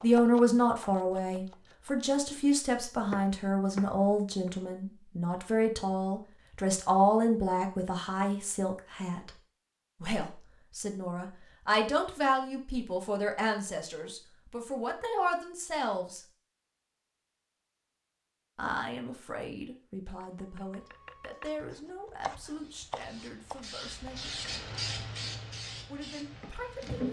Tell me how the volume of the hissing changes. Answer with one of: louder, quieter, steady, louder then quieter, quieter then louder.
louder then quieter.